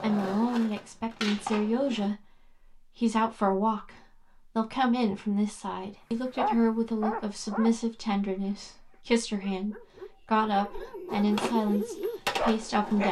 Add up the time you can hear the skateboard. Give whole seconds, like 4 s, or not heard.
4 s.